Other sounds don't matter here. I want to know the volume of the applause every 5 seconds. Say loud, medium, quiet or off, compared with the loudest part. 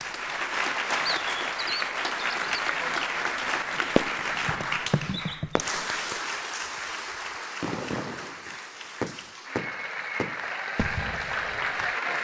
loud, medium, loud.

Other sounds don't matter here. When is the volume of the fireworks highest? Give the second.
4 s.